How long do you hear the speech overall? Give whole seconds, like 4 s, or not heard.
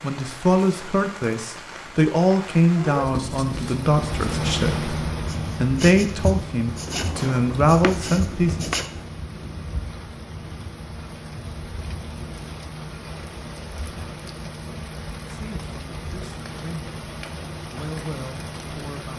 13 s.